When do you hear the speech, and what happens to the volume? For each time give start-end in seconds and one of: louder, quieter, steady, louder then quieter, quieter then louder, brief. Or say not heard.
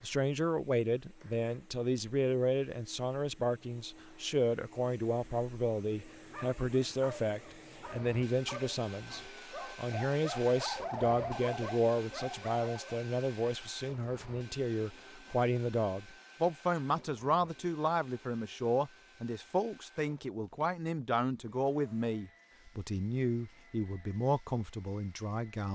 0.0-25.6 steady.